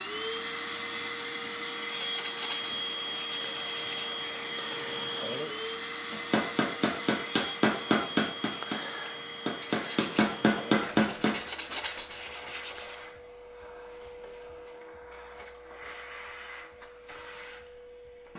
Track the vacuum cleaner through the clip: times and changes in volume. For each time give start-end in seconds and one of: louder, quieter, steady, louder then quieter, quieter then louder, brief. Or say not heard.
0.0-18.3 quieter.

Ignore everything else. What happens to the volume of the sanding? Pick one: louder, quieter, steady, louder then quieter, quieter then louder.
quieter then louder.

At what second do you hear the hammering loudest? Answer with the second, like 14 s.
11 s.